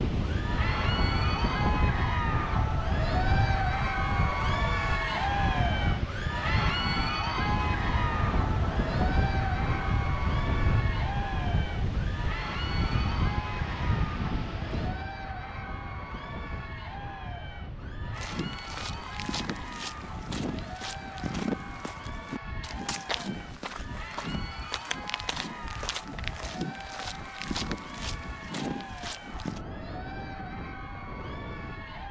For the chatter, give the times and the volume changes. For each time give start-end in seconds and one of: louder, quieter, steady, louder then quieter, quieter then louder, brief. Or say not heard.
0.1-32.0 quieter.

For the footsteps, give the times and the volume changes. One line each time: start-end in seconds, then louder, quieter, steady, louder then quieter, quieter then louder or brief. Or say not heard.
18.1-29.6 steady.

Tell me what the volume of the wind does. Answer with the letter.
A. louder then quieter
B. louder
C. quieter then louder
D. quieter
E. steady
D.